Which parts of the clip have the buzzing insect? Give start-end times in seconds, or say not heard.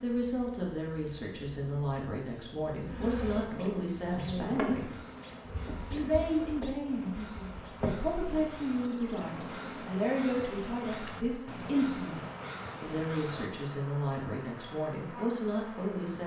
0.0-16.2.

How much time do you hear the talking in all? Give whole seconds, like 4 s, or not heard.
15 s.